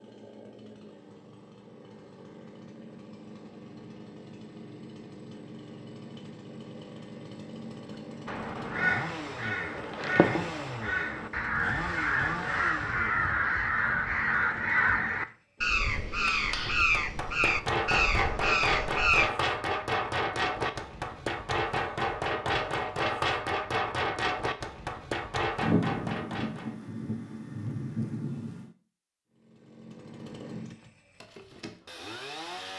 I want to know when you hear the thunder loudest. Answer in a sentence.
The volume of the thunder peaks at 26 seconds.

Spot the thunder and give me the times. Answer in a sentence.
You can hear the thunder from 25.6 to 28.7 s.